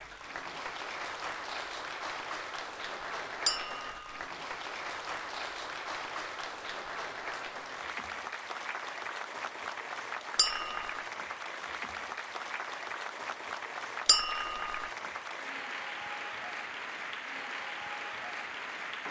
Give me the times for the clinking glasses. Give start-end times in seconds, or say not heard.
3.5-4.2, 10.3-10.9, 14.1-14.9.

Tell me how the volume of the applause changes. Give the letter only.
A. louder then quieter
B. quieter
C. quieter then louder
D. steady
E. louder
D.